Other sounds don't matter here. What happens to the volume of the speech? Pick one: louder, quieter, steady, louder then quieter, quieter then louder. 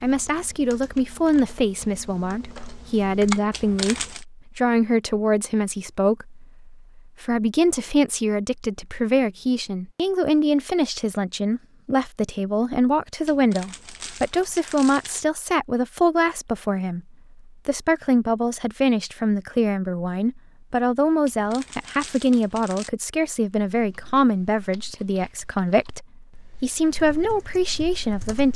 steady.